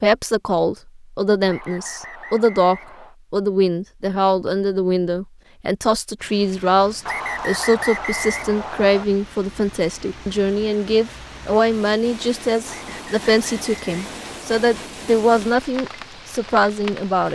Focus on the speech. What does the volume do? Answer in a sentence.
The loudness of the speech stays about the same.